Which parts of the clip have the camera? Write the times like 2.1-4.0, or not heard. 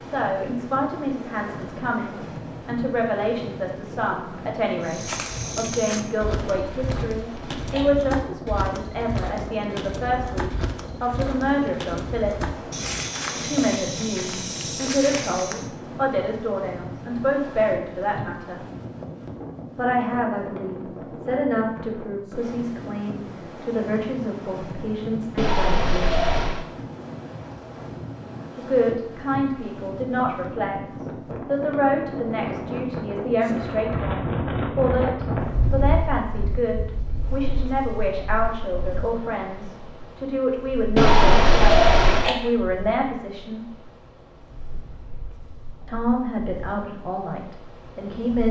6.6-7.9, 25.4-26.6, 41.0-42.4.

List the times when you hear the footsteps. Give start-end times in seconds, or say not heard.
4.8-15.7.